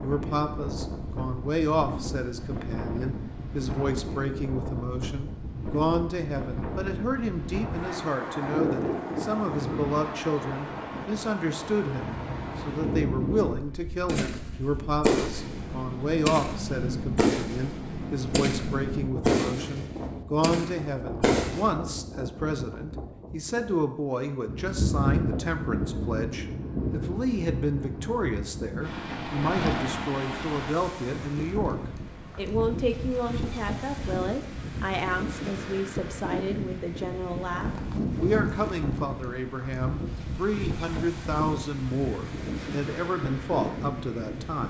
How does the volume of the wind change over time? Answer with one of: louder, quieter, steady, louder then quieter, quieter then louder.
steady.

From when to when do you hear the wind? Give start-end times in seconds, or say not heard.
0.0-44.6.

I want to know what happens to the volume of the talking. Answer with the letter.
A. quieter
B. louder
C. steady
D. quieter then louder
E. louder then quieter
C.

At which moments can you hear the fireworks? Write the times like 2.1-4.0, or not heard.
14.1-21.7.